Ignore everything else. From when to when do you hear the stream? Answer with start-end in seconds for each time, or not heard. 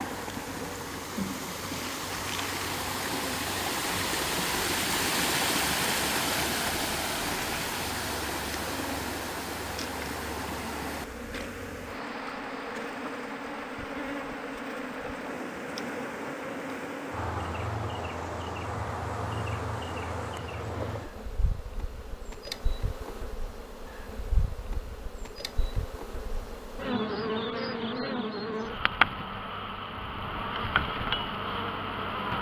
0.0-21.3.